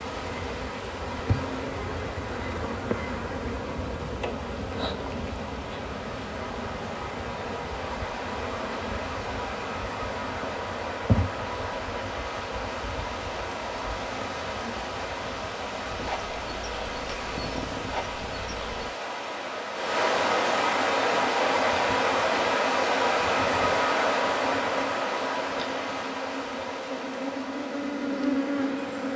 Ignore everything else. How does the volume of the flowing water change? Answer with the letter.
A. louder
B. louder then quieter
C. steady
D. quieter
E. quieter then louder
A.